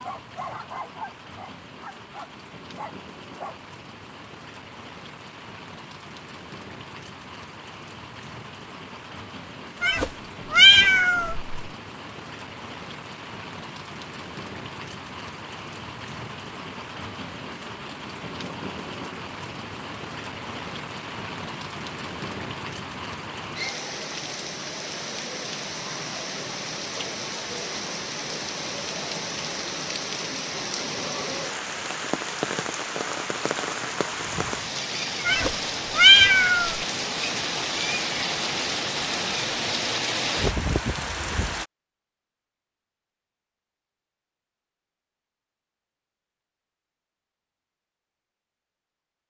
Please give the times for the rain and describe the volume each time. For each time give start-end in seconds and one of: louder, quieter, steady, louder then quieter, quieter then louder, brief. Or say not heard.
0.0-41.6 louder.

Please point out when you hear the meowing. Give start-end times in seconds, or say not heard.
9.8-11.5, 35.2-36.8.